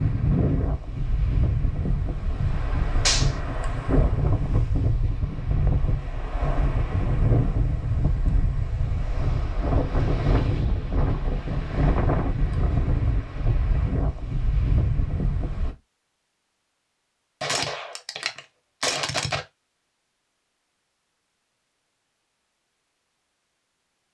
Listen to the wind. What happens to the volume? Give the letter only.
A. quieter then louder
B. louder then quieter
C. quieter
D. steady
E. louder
D.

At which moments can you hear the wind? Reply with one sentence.
You can hear the wind from 0.0 to 15.8 s.